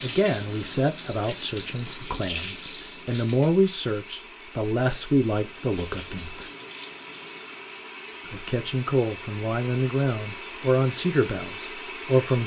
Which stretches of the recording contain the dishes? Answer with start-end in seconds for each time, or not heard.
not heard.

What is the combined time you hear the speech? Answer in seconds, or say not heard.
11 s.